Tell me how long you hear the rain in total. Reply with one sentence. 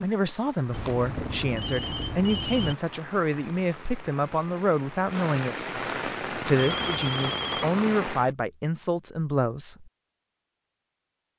The rain can be heard for 8 seconds in total.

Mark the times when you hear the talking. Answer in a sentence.
The talking can be heard from 0.0 to 9.9 s.